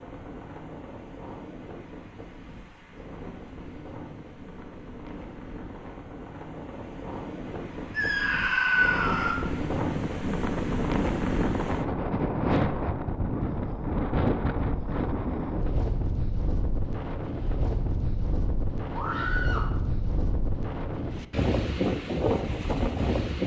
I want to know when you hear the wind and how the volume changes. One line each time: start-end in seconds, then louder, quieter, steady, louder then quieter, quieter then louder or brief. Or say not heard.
0.0-23.4 louder.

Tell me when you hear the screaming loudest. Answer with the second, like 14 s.
9 s.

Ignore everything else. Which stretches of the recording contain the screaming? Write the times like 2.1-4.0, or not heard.
7.9-9.3, 18.9-19.7.